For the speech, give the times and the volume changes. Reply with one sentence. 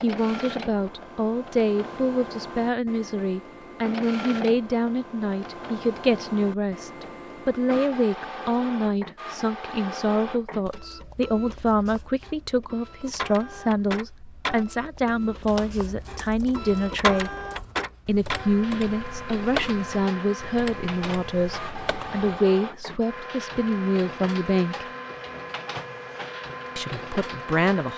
The speech can be heard from 0.0 to 17.4 s, at a steady volume; from 18.1 to 24.9 s, at a steady volume; and briefly from 26.8 to 27.9 s.